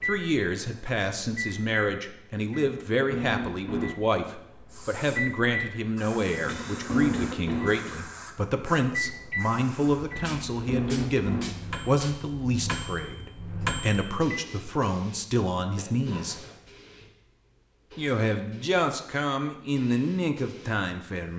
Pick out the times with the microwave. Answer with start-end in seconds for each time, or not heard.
0.0-14.4.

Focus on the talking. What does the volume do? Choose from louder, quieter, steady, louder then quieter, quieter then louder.
steady.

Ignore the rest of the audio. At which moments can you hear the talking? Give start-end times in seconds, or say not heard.
0.0-16.4, 17.9-21.3.